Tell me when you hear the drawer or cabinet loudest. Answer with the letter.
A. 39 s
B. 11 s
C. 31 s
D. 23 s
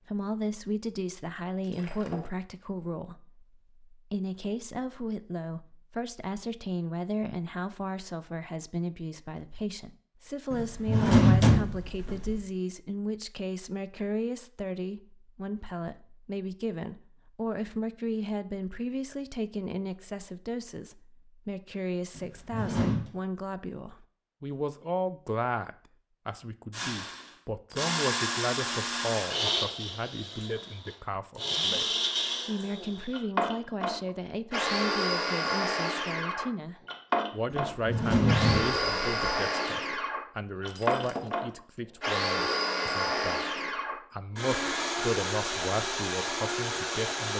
B.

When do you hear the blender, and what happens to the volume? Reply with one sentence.
You can hear the blender from 26.7 to 47.3 s, at a steady volume.